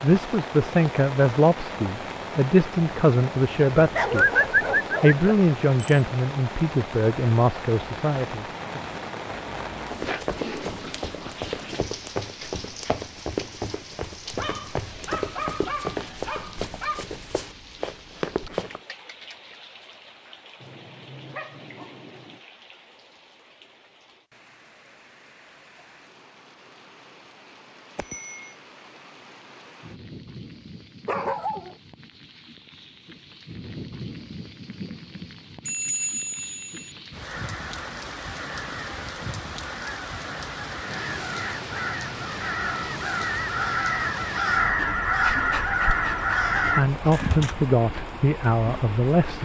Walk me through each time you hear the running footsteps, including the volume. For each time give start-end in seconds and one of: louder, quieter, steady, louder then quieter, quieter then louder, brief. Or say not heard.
9.8-18.8 steady.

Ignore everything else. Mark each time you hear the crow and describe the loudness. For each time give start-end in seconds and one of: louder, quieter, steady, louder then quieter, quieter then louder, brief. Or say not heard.
37.2-47.6 louder.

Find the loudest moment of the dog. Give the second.
4 s.